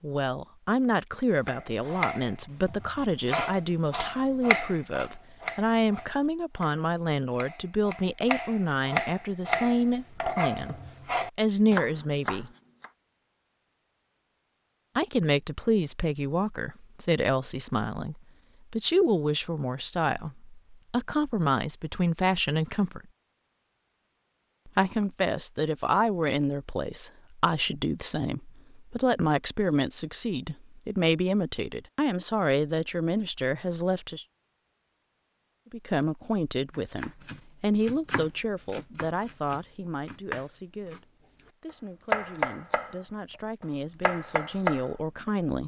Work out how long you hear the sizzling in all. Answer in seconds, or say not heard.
not heard.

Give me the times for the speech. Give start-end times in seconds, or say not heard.
0.0-10.8, 11.3-12.5, 14.9-23.1, 24.6-34.2, 35.7-45.6.